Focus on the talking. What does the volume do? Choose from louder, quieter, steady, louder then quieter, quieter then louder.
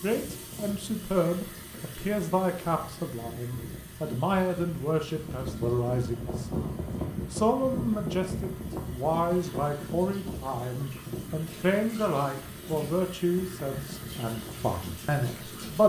steady.